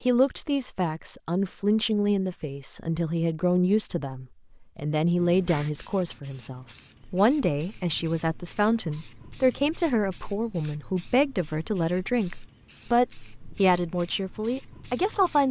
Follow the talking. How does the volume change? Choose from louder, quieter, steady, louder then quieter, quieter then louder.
steady.